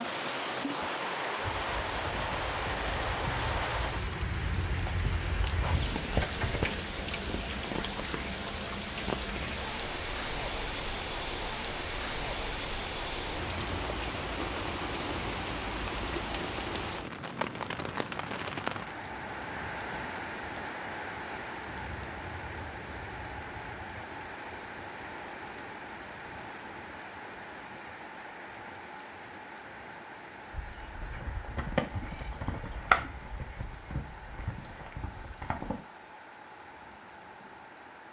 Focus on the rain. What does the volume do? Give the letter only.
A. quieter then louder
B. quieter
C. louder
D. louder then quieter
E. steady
B.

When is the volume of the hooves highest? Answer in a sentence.
The loudest moment of the hooves is at 33 seconds.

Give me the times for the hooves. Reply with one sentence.
The hooves can be heard from 1.4 to 6.7 s and from 30.5 to 35.8 s.